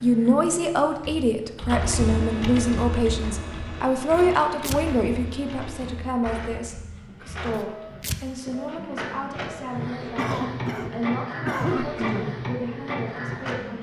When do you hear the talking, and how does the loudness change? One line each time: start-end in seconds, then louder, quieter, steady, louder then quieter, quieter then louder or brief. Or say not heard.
0.0-13.7 quieter.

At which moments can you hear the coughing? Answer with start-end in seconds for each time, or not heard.
10.2-12.3.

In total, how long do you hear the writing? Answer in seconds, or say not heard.
not heard.